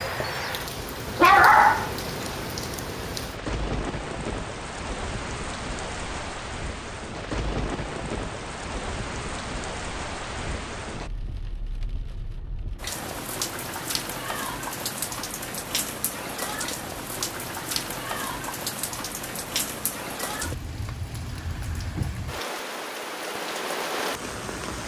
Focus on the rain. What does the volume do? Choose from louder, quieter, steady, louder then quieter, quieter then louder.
steady.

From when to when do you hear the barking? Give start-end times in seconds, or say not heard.
1.1-1.9.